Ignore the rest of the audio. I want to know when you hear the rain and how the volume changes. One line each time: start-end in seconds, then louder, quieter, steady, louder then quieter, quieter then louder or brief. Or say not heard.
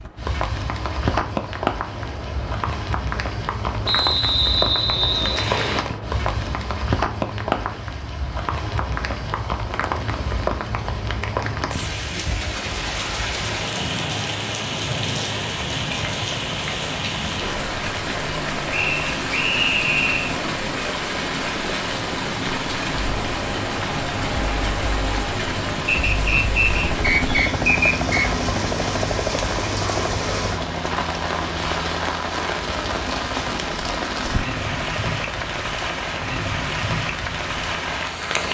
0.0-38.4 steady.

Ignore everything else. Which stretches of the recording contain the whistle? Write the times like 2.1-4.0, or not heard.
3.9-5.8, 18.7-20.4, 25.9-28.2.